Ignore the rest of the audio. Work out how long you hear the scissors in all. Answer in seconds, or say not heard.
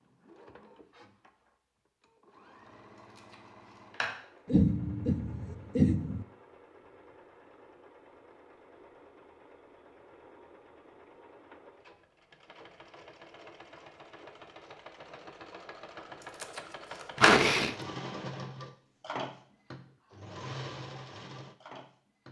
2 s.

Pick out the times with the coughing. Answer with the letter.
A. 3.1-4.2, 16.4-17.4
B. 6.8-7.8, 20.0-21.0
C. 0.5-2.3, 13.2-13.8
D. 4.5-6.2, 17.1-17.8
D.